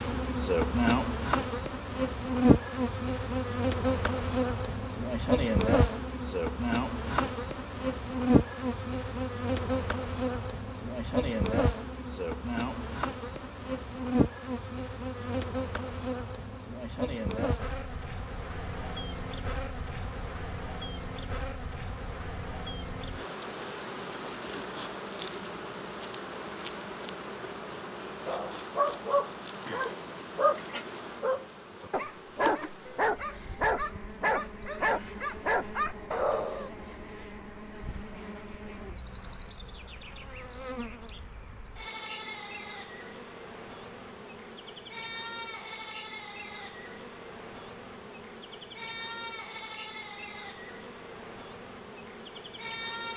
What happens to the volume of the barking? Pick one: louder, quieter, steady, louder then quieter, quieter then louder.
steady.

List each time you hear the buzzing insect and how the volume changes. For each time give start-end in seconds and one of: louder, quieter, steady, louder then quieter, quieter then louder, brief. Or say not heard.
0.0-53.1 quieter.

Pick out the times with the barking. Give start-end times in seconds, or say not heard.
28.2-36.7.